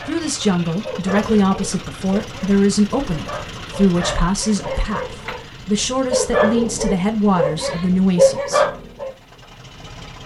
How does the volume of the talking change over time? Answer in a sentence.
The loudness of the talking stays about the same.